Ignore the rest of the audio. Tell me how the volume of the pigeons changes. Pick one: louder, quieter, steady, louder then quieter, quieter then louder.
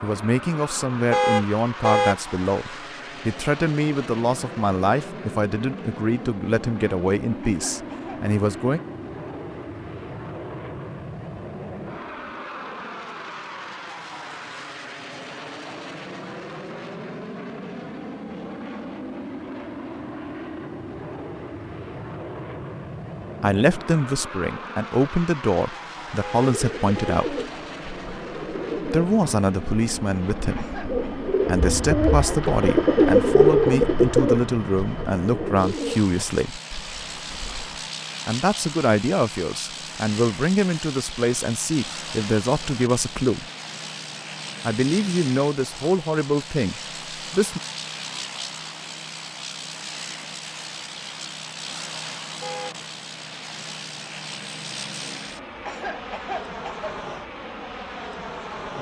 louder then quieter.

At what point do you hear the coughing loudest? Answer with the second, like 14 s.
56 s.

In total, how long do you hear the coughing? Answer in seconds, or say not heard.
3 s.